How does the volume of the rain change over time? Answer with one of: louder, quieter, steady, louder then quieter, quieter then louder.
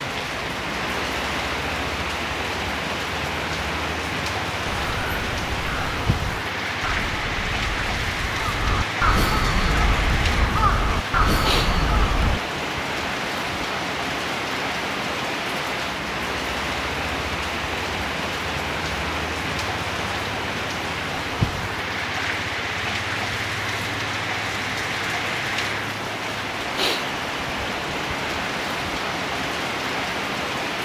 steady.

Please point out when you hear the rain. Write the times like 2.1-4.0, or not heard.
0.0-30.8.